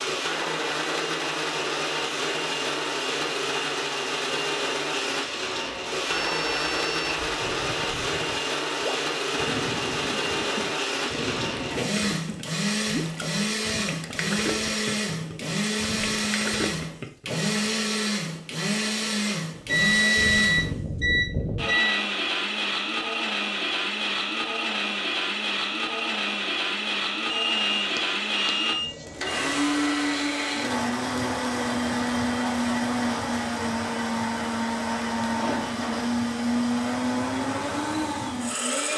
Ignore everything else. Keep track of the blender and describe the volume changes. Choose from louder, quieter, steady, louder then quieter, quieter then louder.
steady.